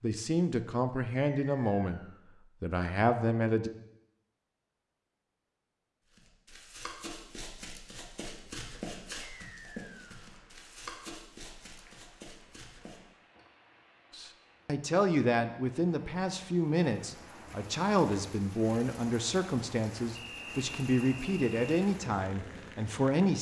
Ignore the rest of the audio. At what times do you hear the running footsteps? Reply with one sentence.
The running footsteps can be heard from 6.0 to 13.0 s.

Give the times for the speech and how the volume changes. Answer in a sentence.
The speech can be heard briefly from 0.0 to 2.0 s; briefly from 2.6 to 3.7 s; and from 14.1 to 23.3 s, at a steady volume.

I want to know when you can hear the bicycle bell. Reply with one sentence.
The bicycle bell can't be heard in this clip.